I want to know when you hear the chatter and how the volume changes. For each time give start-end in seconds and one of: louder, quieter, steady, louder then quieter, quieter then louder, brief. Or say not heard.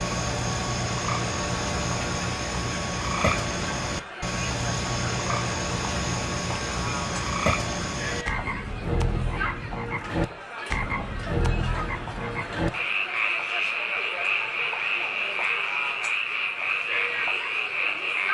0.0-18.2 steady.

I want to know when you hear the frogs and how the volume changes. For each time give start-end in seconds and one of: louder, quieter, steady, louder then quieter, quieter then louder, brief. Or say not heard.
0.0-18.2 steady.